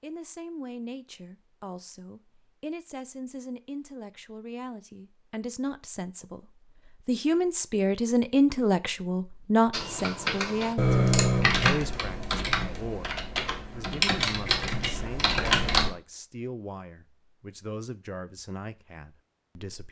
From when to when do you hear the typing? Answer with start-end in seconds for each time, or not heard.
9.7-15.9.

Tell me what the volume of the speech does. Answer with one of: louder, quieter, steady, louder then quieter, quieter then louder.
louder then quieter.